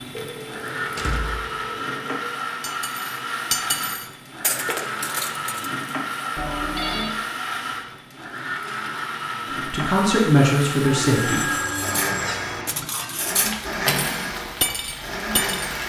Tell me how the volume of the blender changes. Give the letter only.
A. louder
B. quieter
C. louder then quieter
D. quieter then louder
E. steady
E.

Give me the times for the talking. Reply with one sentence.
The talking can be heard from 9.7 to 11.5 s.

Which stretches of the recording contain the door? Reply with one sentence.
The door can be heard from 0.8 to 1.6 s.